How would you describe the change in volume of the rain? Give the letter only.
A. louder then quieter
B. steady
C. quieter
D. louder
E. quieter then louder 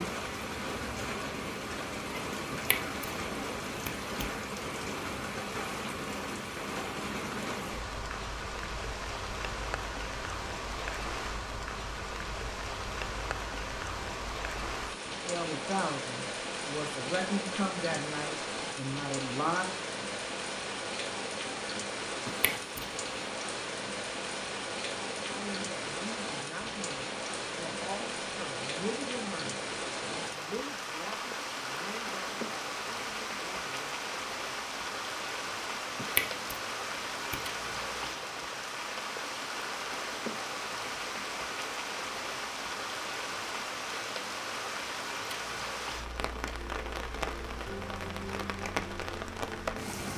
B.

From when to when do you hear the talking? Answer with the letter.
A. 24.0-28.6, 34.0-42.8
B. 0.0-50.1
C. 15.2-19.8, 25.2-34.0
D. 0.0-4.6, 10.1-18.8
C.